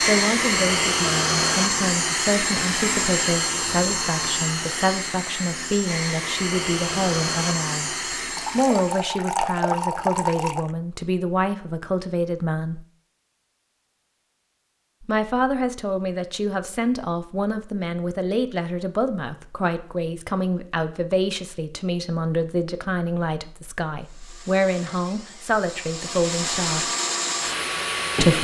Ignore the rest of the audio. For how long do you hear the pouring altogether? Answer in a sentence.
The pouring can be heard for 2 seconds in total.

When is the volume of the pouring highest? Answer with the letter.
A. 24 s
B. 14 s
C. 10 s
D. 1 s
C.